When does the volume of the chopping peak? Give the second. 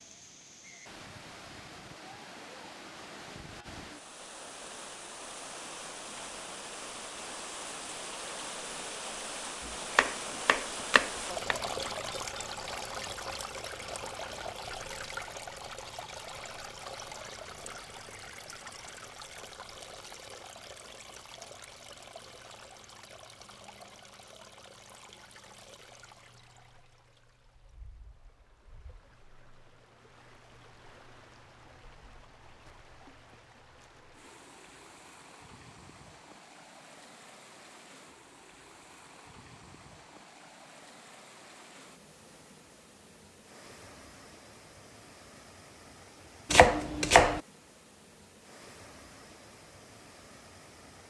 47 s.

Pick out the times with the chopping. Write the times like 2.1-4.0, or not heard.
9.9-11.6, 46.5-47.4.